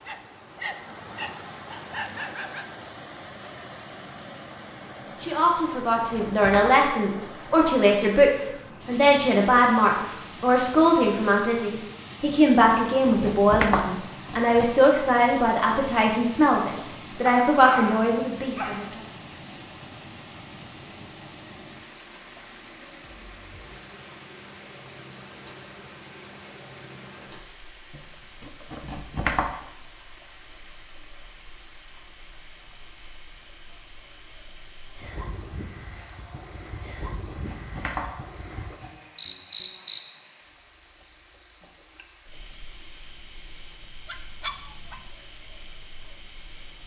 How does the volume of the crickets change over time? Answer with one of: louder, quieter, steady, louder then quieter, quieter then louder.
louder.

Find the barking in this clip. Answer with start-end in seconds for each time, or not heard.
0.1-2.6, 17.5-19.0, 44.0-45.0.